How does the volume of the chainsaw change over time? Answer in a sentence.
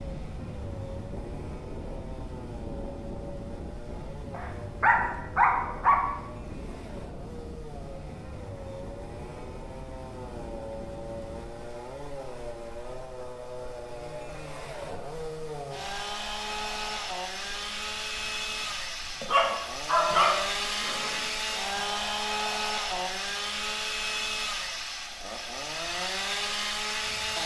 The volume of the chainsaw goes up.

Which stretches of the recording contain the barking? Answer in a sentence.
The barking can be heard from 4.3 to 6.0 s and from 19.2 to 21.7 s.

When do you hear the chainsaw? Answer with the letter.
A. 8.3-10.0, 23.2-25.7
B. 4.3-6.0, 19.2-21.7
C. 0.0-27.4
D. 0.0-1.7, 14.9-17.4
C.